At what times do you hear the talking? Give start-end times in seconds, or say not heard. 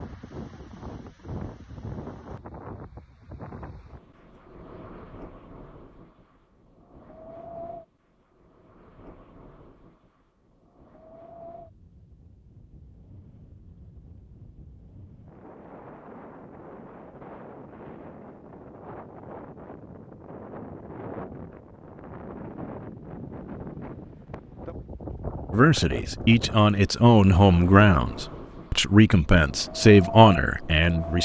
25.5-31.2.